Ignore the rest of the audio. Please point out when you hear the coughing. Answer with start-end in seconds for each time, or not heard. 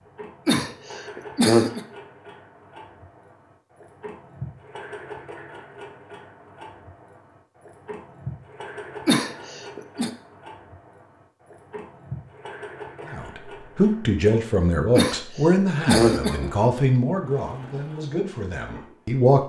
0.5-1.8, 9.1-10.1, 14.9-16.5.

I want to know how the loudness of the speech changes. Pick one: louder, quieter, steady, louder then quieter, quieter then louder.
quieter.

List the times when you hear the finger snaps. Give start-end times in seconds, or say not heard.
not heard.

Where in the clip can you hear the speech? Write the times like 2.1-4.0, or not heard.
13.1-19.4.